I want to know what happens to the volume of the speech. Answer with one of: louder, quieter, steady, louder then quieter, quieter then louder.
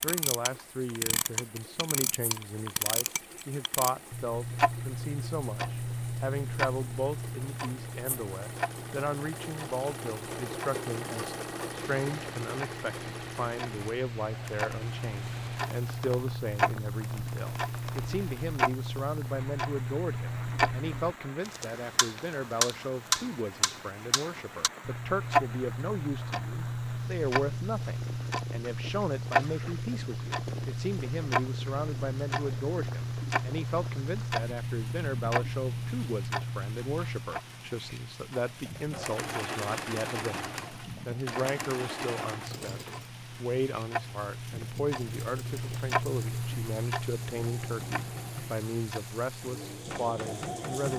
steady.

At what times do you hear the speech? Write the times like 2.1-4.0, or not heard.
0.0-50.9.